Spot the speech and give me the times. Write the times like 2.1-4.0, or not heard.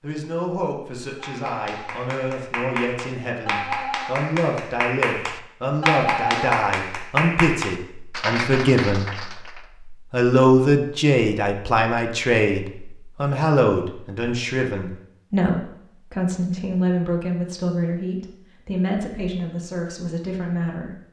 0.0-20.9.